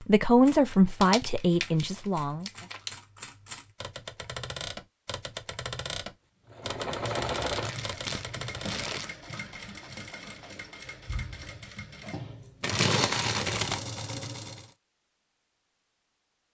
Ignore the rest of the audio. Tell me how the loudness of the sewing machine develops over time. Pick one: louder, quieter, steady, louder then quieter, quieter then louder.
quieter then louder.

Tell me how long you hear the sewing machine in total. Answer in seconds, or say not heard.
8 s.